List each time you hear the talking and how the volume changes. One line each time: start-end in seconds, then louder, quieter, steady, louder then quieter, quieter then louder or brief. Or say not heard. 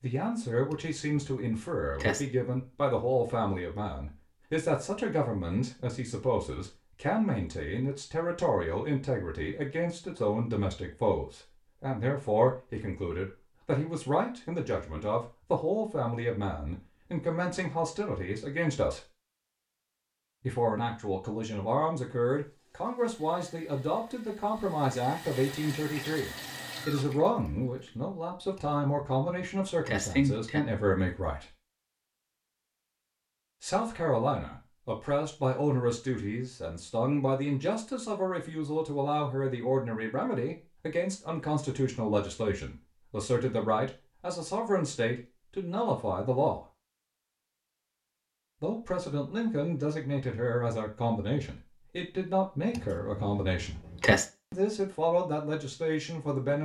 0.0-19.0 steady
20.4-31.5 steady
33.6-46.6 steady
48.6-53.8 steady
54.5-56.5 brief.